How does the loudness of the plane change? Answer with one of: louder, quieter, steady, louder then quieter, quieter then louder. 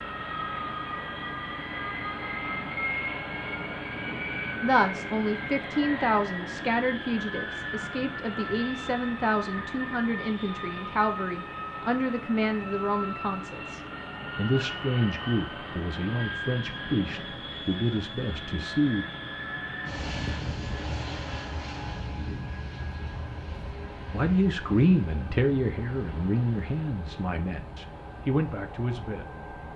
quieter.